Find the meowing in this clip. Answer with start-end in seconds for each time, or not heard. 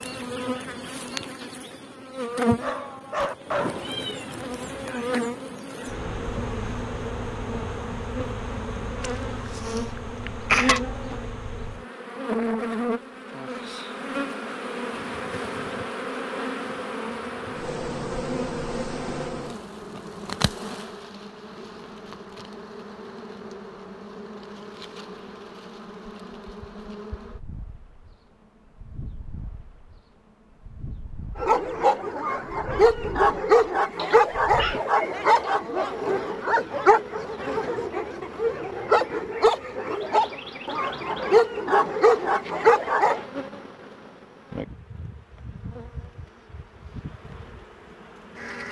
3.6-5.0, 34.0-35.5.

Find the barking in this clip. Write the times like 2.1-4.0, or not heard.
2.6-4.0, 31.4-43.2.